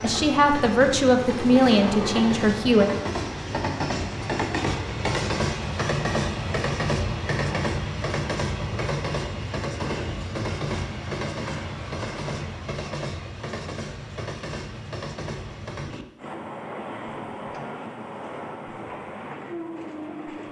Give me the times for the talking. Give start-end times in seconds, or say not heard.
0.0-2.9.